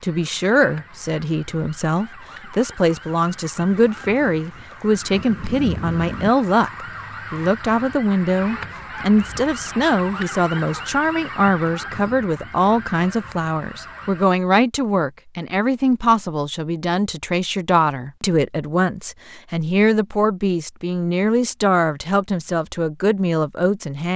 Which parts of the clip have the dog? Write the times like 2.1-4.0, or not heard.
not heard.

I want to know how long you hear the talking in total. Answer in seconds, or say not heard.
24 s.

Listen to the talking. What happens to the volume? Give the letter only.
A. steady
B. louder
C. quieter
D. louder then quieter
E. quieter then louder
A.